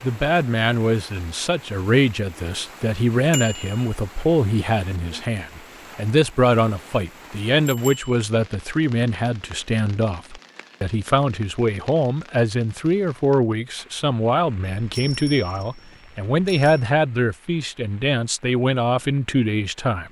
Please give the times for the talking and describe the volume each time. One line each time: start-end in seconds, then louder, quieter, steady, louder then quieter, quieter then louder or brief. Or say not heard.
0.0-20.0 steady.